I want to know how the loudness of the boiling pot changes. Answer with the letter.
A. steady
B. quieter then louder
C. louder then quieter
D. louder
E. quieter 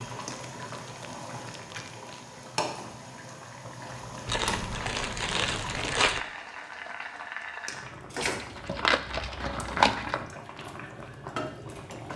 A.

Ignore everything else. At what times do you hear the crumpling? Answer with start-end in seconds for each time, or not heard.
0.5-2.2, 4.2-6.2, 8.2-10.2.